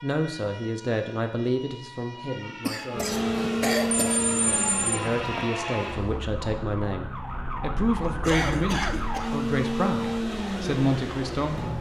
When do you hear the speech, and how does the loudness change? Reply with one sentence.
The speech can be heard from 0.0 to 11.7 s, getting quieter then louder.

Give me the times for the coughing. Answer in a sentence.
The coughing can be heard from 2.6 to 4.2 s and from 8.1 to 9.3 s.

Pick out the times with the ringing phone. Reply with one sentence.
The ringing phone can be heard from 3.0 to 5.5 s.